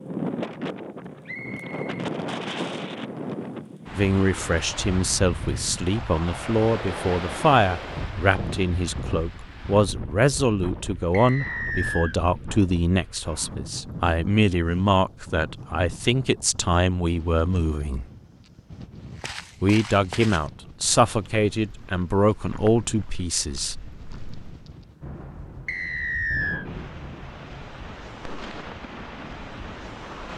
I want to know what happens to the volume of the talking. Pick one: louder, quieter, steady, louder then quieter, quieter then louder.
steady.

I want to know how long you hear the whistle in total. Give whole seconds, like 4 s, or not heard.
3 s.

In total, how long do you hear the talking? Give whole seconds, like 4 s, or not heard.
18 s.